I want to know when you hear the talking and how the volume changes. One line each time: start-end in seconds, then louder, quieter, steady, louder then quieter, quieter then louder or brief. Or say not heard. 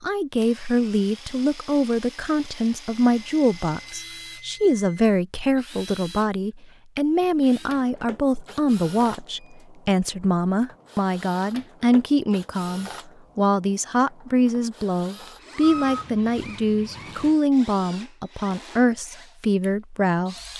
0.0-20.4 steady.